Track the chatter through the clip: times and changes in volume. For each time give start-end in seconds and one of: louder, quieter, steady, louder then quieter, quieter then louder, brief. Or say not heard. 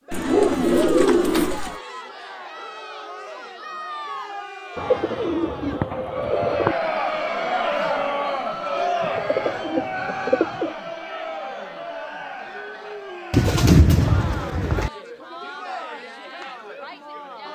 0.0-17.5 louder then quieter.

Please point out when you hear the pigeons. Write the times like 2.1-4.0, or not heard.
0.1-1.8, 4.8-6.8, 9.0-10.8, 13.3-14.9.